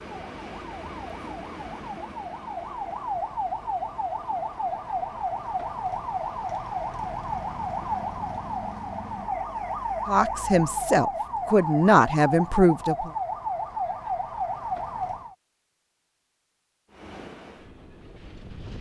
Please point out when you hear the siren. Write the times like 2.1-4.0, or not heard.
0.0-15.3.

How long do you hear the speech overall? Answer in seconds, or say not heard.
3 s.